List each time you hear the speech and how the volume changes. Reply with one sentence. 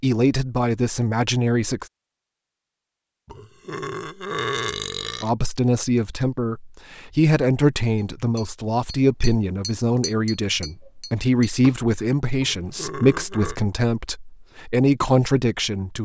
You can hear the speech briefly from 0.0 to 1.9 s; and from 5.2 to 15.9 s, at a steady volume.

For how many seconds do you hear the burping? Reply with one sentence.
You can hear the burping for 3 seconds altogether.